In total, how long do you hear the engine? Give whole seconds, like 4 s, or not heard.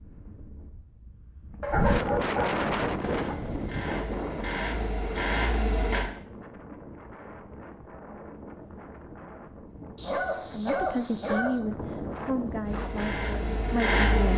5 s.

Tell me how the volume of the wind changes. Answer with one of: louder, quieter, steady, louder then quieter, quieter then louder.
quieter then louder.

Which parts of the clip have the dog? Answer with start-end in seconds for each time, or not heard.
1.6-3.4, 9.9-11.6.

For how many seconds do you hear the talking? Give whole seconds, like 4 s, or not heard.
4 s.